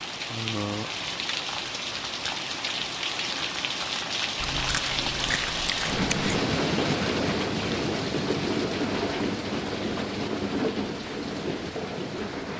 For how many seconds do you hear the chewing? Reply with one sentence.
The chewing can be heard for 2 seconds in total.